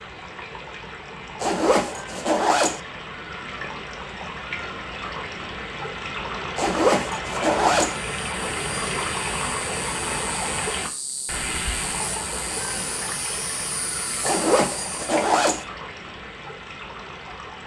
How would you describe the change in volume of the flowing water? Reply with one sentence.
The loudness of the flowing water goes up, then down.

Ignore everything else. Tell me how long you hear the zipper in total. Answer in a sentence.
The zipper can be heard for 4 seconds in total.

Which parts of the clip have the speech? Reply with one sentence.
You can't hear the speech here.